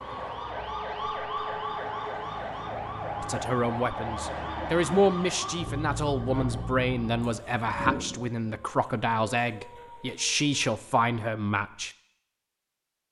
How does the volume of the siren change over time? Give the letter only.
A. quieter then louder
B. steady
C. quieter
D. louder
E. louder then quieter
C.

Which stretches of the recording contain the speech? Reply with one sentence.
The speech can be heard from 3.2 to 11.9 s.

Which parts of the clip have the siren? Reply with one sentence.
The siren can be heard from 0.0 to 10.7 s.